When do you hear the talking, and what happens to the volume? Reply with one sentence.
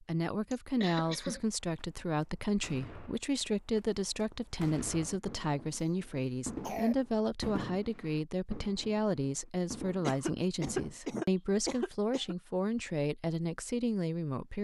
You can hear the talking from 0.0 to 14.5 s, at a steady volume.